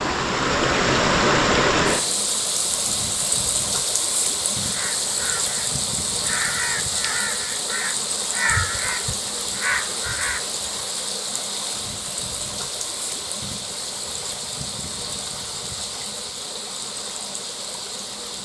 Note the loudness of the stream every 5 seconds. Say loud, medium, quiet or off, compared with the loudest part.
loud, medium, medium, medium.